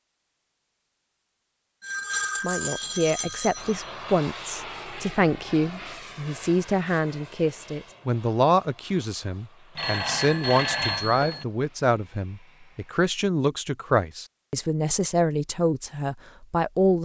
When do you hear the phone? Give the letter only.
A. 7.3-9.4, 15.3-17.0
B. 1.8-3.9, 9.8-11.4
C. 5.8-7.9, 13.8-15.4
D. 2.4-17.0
B.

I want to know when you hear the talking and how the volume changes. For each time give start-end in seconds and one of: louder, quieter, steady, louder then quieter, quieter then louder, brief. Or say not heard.
2.4-17.0 steady.